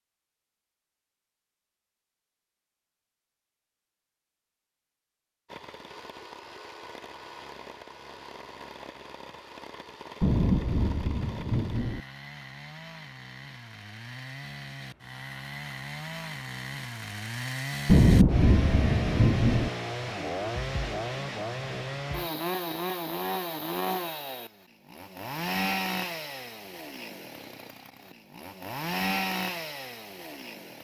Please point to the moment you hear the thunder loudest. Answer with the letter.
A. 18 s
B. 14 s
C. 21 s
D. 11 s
A.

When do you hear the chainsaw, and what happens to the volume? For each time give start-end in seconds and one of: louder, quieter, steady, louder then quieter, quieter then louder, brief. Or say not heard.
5.5-30.7 louder.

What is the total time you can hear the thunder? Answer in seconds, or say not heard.
4 s.